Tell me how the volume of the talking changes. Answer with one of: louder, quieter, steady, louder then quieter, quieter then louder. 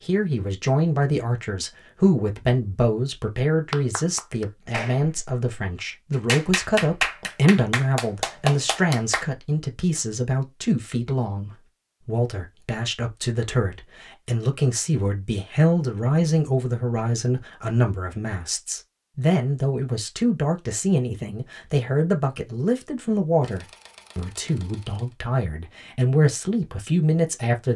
steady.